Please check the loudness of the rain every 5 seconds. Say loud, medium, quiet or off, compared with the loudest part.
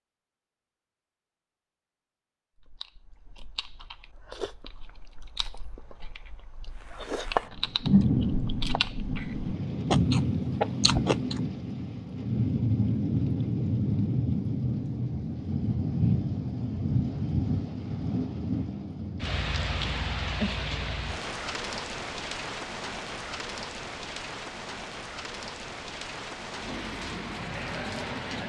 off, loud, loud, loud, medium, medium.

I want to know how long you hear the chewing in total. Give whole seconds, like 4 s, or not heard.
9 s.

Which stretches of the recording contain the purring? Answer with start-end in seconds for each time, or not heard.
not heard.